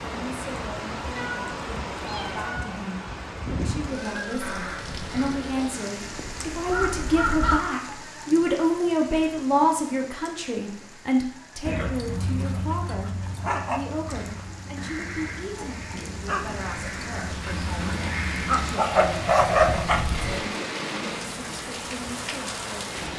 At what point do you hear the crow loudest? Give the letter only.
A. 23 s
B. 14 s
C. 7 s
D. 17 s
C.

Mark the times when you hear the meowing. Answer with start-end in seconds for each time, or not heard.
1.1-2.8.